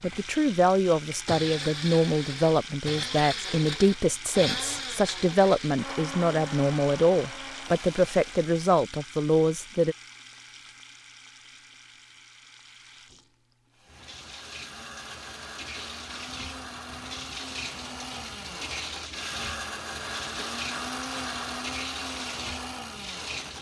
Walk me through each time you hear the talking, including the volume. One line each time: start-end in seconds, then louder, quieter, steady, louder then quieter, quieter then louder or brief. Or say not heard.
0.0-9.9 steady.